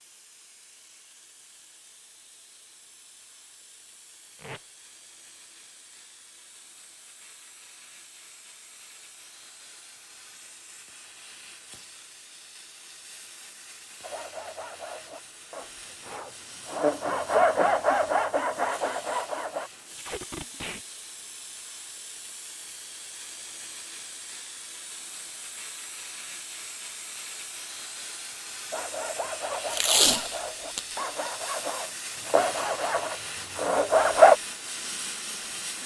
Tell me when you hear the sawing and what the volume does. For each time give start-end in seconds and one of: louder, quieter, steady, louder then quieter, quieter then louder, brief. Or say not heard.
14.0-19.7 louder then quieter
28.7-34.4 louder.